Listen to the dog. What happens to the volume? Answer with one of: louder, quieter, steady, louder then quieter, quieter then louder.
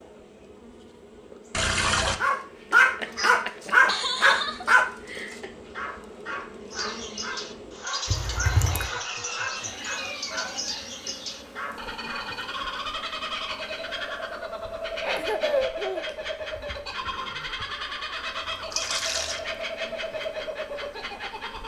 quieter.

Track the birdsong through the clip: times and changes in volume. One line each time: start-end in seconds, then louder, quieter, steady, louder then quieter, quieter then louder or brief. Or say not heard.
6.7-21.6 steady.